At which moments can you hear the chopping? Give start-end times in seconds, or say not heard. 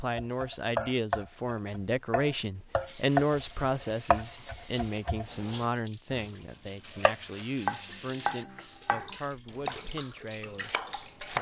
0.0-6.3, 7.0-11.3.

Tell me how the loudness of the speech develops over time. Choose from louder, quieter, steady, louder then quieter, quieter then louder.
quieter.